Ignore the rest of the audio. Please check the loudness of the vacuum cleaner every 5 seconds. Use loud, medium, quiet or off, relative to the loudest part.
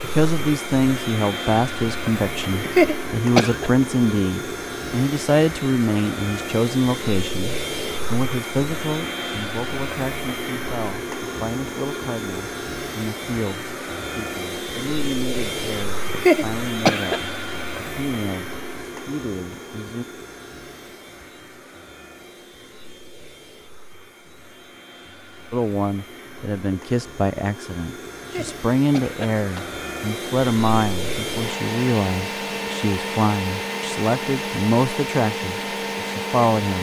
loud, loud, loud, loud, quiet, medium, loud, loud.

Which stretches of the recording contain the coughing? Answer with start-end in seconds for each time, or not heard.
2.5-3.7, 16.0-17.2, 28.2-29.8.